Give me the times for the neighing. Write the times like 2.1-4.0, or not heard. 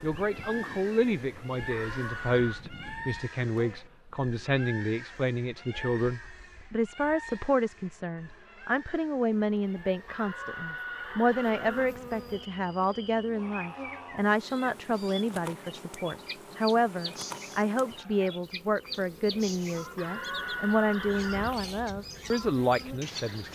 1.7-2.6, 10.1-11.9, 19.9-21.6.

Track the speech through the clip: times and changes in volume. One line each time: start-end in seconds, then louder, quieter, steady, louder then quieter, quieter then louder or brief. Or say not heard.
0.0-23.5 steady.